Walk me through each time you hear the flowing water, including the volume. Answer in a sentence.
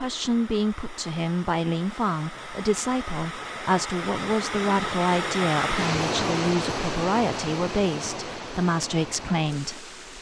You can hear the flowing water from 0.0 to 10.1 s, getting louder then quieter.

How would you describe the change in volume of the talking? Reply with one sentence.
The volume of the talking stays about the same.